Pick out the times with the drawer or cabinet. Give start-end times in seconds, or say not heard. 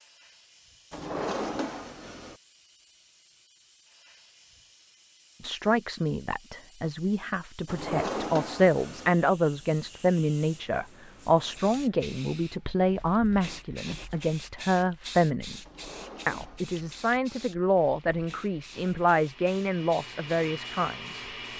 0.9-2.4, 7.7-9.2, 15.6-17.1.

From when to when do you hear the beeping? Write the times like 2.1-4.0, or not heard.
not heard.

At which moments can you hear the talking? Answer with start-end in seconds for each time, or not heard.
5.4-15.6, 16.2-21.2.